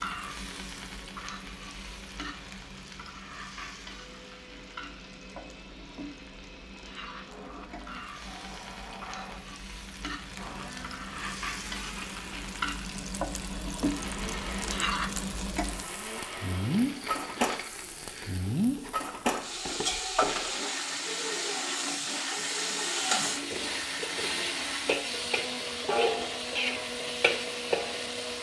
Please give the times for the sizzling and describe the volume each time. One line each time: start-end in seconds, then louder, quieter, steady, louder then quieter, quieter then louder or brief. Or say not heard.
0.0-28.3 louder.